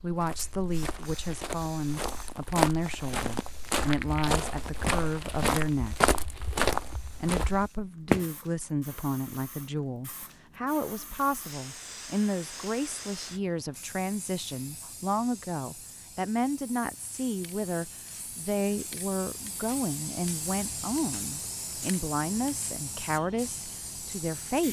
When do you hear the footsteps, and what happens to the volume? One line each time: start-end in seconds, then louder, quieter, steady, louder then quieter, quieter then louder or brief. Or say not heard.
0.1-8.2 louder.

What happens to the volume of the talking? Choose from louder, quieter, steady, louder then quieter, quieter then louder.
steady.